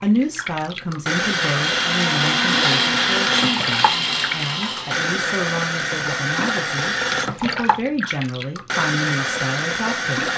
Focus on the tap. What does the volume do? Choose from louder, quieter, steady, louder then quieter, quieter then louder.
steady.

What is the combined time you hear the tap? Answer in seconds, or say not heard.
10 s.